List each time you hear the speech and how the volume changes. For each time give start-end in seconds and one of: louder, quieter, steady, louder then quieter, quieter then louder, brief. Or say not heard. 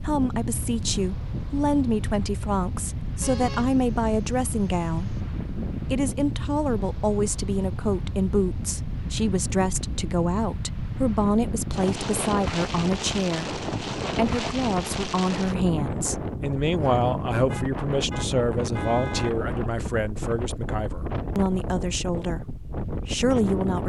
0.0-23.8 steady.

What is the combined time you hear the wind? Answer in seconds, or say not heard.
24 s.